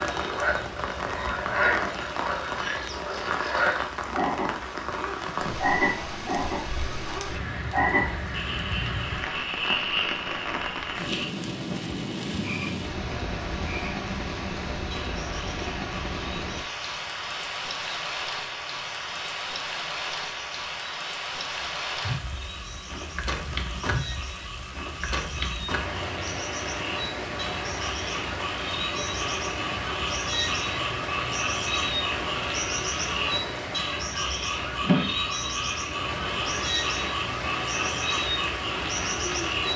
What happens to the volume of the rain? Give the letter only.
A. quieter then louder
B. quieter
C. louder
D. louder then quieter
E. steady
E.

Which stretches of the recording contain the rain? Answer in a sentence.
The rain can be heard from 0.0 to 39.7 s.